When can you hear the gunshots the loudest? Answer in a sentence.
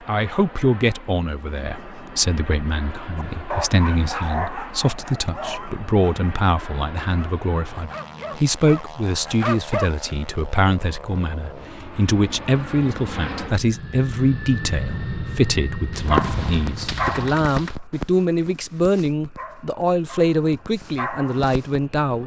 The volume of the gunshots peaks at 16 seconds.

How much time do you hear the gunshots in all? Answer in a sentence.
The gunshots can be heard for 2 seconds in total.